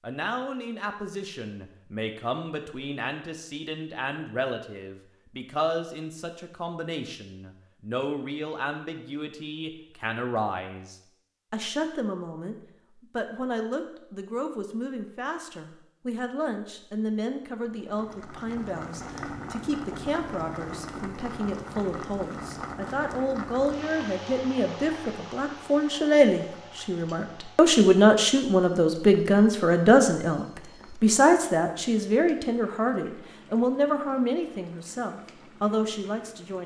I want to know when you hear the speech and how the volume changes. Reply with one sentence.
The speech can be heard from 0.0 to 36.6 s, getting louder.